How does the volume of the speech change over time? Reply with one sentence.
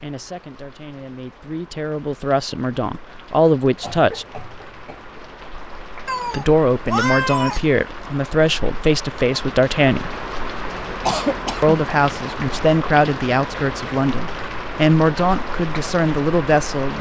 The volume of the speech goes up.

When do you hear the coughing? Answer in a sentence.
The coughing can be heard from 3.8 to 5.3 s and from 11.1 to 11.8 s.